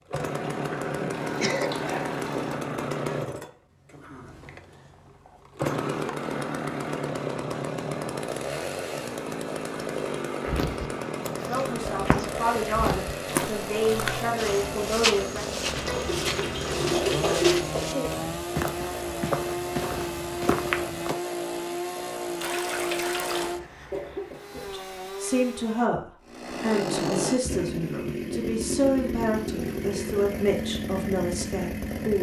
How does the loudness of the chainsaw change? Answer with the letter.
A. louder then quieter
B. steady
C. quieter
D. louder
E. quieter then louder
B.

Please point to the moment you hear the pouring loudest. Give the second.
17 s.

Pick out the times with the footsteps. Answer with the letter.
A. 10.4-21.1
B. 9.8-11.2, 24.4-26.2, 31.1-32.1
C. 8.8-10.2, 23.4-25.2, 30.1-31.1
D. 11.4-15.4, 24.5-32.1
A.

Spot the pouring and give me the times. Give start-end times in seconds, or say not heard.
1.1-2.6, 15.8-17.6, 22.4-23.5.